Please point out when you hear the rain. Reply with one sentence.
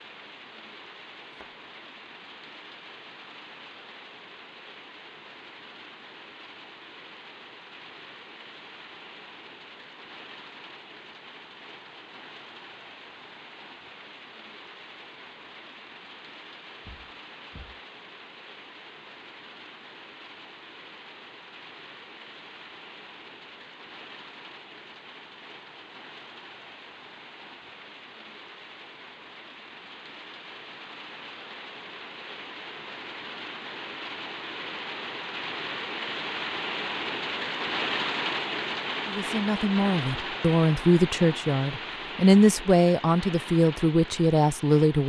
You can hear the rain from 0.0 to 45.0 s.